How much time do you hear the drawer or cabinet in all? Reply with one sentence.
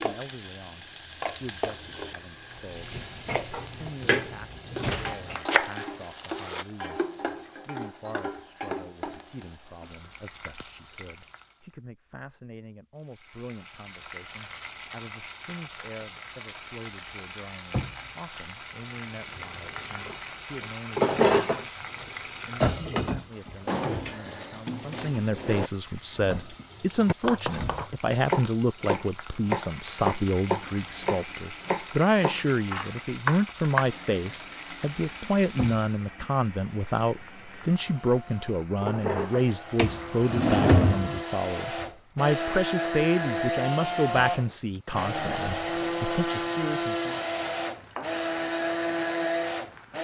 The drawer or cabinet can be heard for 6 seconds in total.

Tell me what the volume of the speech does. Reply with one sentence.
The loudness of the speech goes up.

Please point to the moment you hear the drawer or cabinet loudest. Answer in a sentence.
The loudest moment of the drawer or cabinet is at 41 seconds.